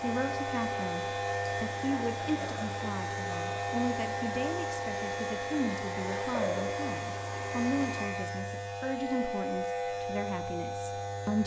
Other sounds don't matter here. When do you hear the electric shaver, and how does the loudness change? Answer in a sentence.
The electric shaver can be heard from 0.0 to 11.4 s, at a steady volume.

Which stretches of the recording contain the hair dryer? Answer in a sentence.
The hair dryer can be heard from 0.0 to 8.2 s.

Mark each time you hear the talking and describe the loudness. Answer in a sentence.
The talking can be heard from 0.0 to 11.4 s, at a steady volume.